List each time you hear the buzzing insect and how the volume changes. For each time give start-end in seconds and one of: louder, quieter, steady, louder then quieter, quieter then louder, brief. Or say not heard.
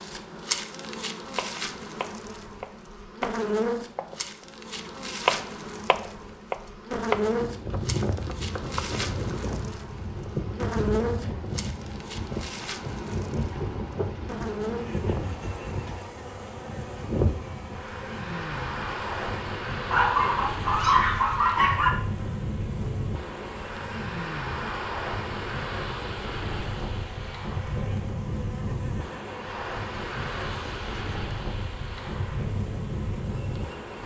0.0-34.0 quieter.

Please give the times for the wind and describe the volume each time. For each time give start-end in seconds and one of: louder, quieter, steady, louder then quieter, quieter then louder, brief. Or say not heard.
7.1-34.0 steady.